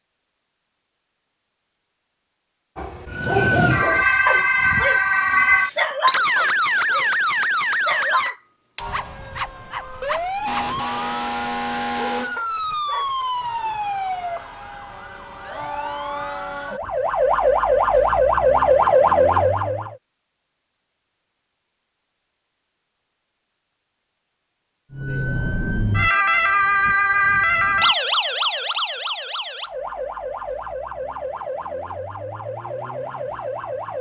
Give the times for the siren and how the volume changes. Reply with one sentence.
The siren can be heard from 3.1 to 19.9 s, getting quieter then louder; and from 24.9 to 33.9 s, getting quieter.